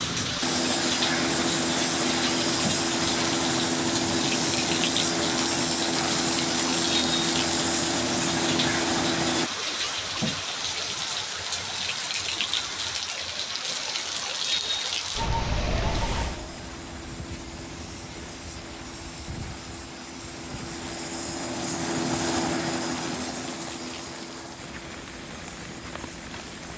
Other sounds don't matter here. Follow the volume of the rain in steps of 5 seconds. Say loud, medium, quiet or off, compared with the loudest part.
loud, loud, loud, medium, quiet, quiet.